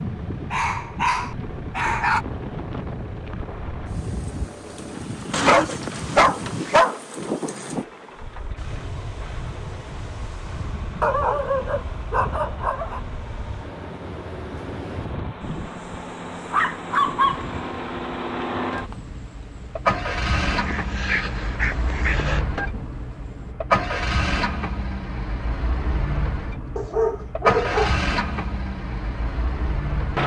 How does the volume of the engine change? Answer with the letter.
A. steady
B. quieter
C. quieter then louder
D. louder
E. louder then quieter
D.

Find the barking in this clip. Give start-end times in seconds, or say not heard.
0.5-2.2, 5.3-7.0, 11.0-13.0, 16.5-17.4, 20.6-22.4, 26.8-28.0.